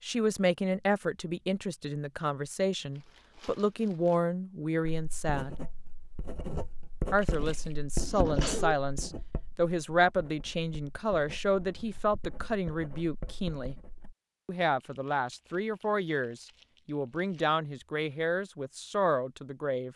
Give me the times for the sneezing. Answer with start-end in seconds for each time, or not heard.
7.3-8.8.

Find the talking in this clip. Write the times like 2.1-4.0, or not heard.
0.0-5.5, 7.1-13.8, 14.4-19.9.